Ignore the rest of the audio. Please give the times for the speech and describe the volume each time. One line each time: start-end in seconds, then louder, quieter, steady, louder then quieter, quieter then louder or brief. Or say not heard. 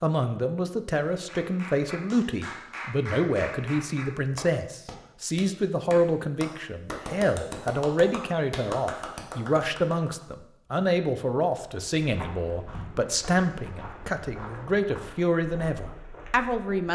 0.0-16.9 steady.